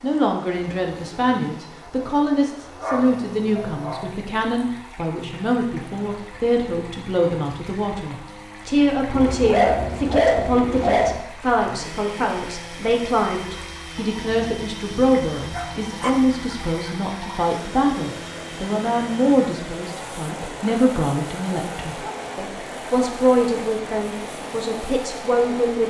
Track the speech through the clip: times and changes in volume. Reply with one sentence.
The speech can be heard from 0.0 to 25.8 s, at a steady volume.